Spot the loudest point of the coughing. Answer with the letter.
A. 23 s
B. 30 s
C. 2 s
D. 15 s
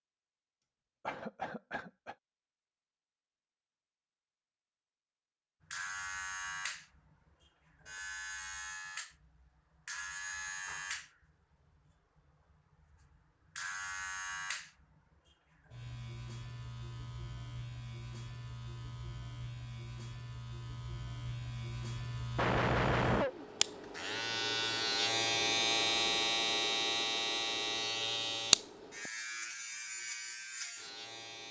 A.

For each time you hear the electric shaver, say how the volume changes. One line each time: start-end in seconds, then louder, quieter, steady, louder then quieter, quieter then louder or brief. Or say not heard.
5.6-31.4 louder.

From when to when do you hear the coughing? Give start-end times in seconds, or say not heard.
1.1-2.1, 22.4-23.4.